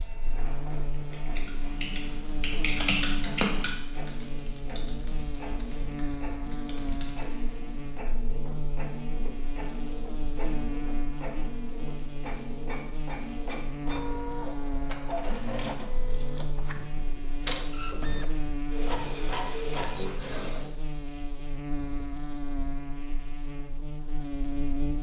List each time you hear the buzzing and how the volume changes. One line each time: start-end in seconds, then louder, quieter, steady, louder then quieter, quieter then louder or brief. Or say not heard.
0.0-24.9 steady.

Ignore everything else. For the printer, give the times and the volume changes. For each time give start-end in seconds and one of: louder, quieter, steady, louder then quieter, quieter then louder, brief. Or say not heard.
0.0-20.8 louder.